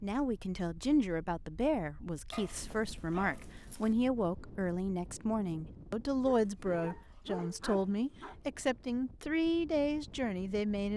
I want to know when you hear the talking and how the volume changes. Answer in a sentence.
You can hear the talking from 0.0 to 10.9 s, at a steady volume.